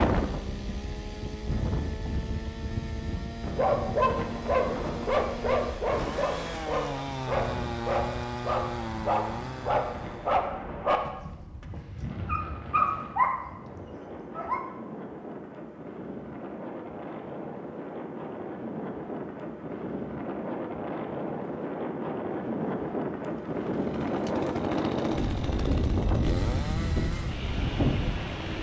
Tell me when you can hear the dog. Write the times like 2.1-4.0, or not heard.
3.5-14.7.